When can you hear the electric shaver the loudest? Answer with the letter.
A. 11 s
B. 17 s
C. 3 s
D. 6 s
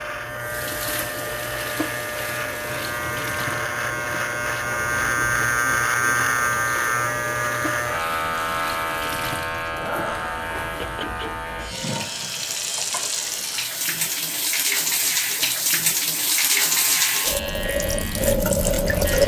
D.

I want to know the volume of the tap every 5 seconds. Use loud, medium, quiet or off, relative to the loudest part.
quiet, quiet, medium, loud.